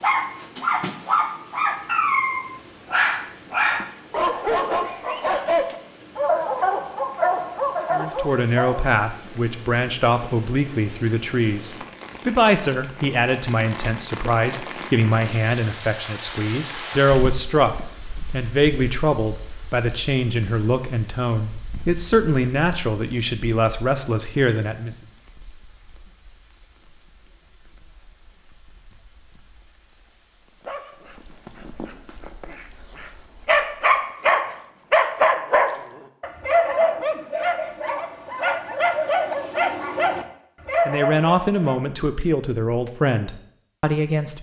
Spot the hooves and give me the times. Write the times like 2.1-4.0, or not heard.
not heard.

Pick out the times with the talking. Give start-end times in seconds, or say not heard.
7.9-24.9, 40.9-44.3.